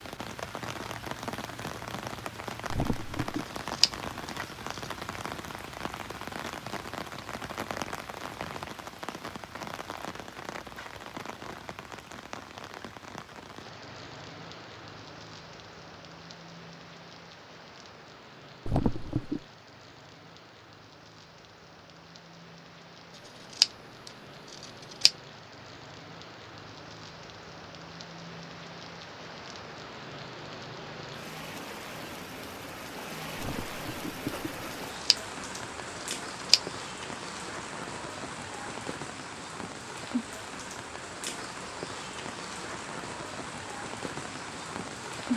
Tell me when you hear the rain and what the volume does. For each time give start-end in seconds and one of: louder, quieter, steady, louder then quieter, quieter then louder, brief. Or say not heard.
0.0-45.3 quieter then louder.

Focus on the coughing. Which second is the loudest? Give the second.
19 s.